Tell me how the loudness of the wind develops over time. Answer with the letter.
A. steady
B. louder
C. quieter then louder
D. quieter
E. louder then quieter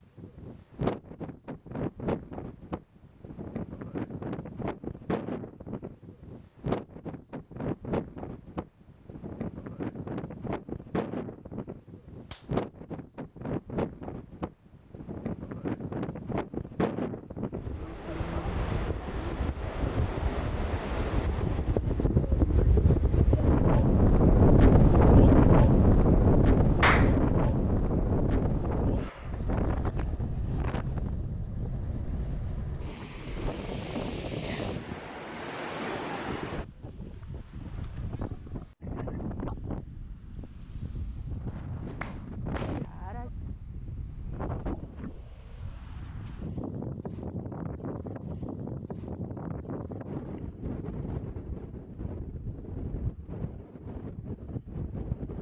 E.